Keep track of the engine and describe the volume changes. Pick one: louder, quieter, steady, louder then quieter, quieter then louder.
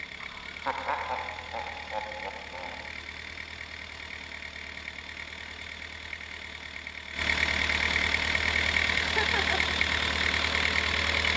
louder.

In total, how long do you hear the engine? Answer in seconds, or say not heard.
11 s.